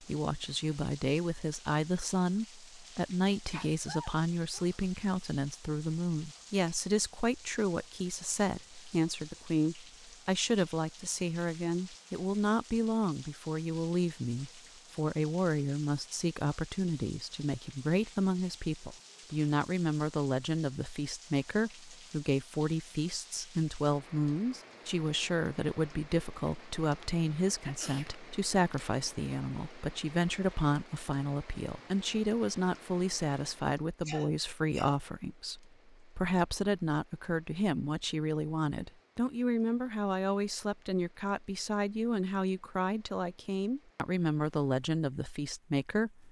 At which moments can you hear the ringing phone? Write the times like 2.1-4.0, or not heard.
not heard.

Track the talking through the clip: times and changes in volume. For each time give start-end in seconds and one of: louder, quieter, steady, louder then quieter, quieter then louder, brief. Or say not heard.
0.0-46.2 steady.